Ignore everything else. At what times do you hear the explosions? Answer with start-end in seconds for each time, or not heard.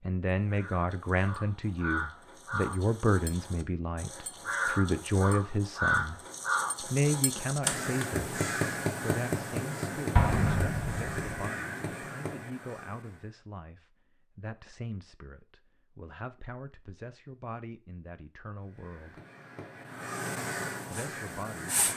10.2-11.3.